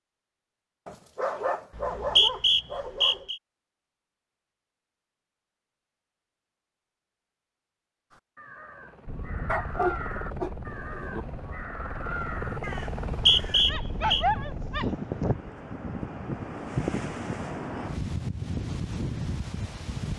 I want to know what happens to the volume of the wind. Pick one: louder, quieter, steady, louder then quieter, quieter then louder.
louder.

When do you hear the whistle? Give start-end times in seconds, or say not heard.
1.8-3.4, 13.1-14.2.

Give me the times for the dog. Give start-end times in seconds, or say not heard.
0.8-3.2, 9.4-11.2, 13.7-15.2.